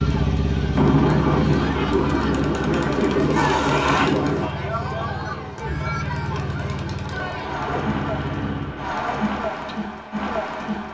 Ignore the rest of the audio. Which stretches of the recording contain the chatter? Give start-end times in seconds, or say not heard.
0.0-10.9.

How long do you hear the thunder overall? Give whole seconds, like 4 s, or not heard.
4 s.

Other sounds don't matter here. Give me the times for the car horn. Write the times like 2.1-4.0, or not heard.
3.4-4.1.